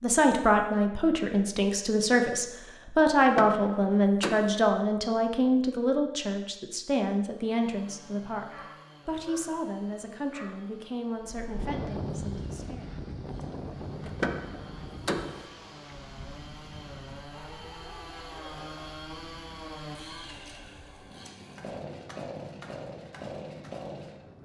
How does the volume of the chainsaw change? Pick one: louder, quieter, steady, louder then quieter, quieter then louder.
louder.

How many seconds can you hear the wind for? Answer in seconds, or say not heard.
13 s.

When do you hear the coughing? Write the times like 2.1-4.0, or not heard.
not heard.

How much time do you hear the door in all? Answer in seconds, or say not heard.
3 s.